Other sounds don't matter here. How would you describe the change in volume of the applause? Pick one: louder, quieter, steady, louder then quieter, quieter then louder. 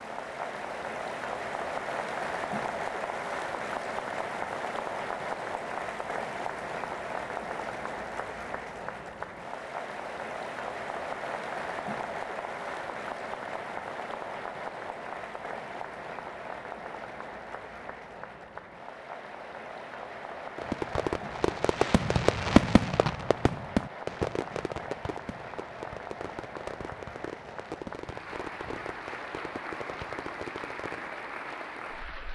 quieter.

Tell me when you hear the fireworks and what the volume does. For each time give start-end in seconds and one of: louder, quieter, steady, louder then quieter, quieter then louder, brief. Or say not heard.
20.6-31.1 quieter.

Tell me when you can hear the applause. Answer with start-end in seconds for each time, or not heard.
0.0-32.3.